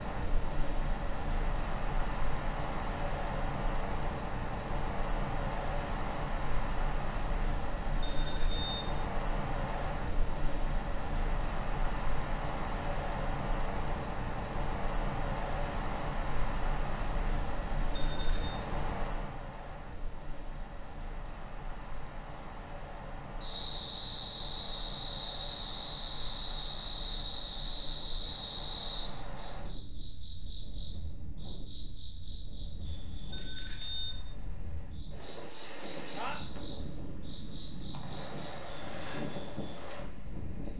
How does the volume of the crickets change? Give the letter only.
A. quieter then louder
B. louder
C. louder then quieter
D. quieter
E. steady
C.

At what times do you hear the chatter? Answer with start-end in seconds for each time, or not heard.
not heard.